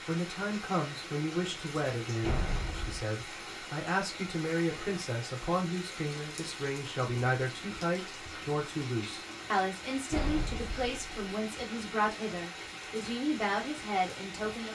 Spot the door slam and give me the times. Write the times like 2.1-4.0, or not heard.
2.2-3.0, 10.1-11.1.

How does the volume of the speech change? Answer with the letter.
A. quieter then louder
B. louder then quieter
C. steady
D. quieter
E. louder
C.